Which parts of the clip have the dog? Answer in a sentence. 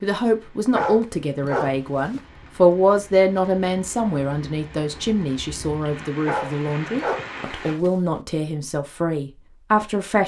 The dog can be heard from 0.7 to 2.2 s and from 6.2 to 8.0 s.